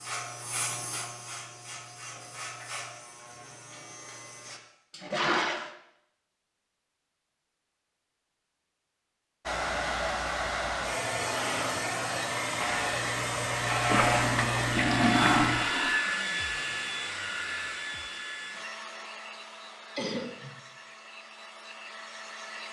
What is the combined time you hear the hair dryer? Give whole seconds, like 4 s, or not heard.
13 s.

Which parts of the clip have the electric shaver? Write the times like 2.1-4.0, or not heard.
0.0-4.6, 12.6-15.7.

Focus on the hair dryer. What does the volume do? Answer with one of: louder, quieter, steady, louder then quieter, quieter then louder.
quieter.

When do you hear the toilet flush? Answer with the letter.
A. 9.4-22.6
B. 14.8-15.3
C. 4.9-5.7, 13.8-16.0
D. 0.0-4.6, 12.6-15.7
C.